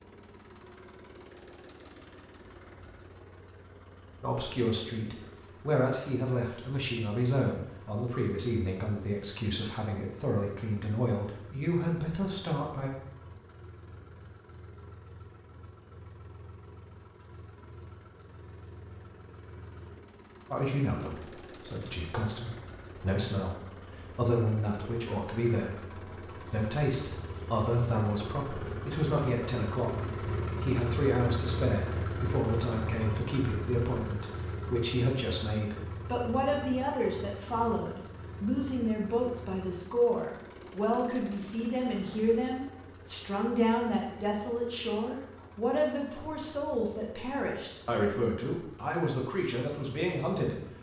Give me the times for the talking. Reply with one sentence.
You can hear the talking from 4.2 to 12.9 s and from 20.5 to 50.6 s.